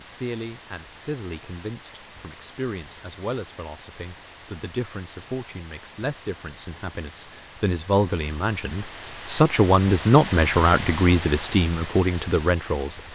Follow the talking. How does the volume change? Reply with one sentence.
The volume of the talking goes up.